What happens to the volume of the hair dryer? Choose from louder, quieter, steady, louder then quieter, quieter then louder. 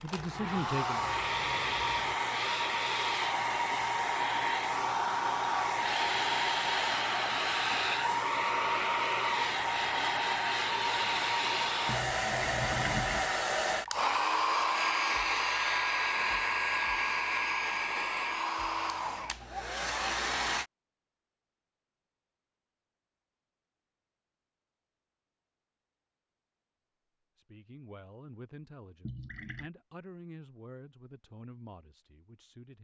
steady.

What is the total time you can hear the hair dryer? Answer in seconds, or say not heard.
21 s.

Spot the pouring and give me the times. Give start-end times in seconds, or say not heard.
0.1-2.1, 11.8-13.3, 29.1-29.7.